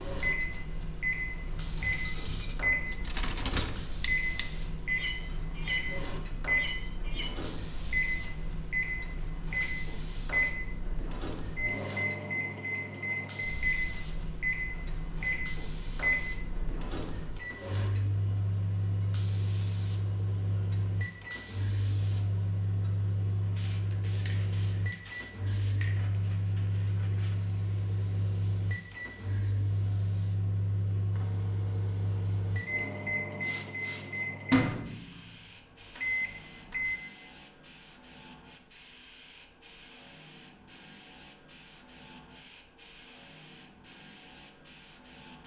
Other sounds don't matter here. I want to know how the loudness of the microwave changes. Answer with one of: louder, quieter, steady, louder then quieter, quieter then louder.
steady.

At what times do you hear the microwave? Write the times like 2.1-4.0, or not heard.
0.0-37.0.